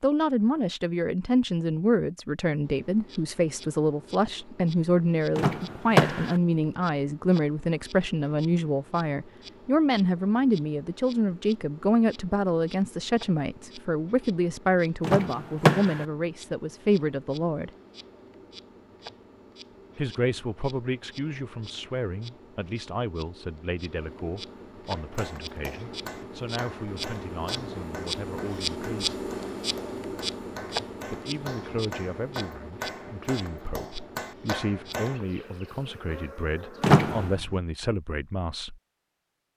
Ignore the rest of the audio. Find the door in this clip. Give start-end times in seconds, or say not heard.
5.3-6.3, 15.0-16.1, 36.8-37.3.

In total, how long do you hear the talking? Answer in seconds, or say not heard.
35 s.